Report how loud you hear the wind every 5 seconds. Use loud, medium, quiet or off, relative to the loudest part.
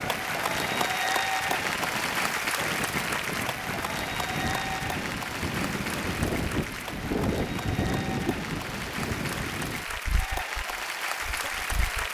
medium, loud, quiet.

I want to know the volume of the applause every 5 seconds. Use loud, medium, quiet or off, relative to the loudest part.
loud, medium, loud.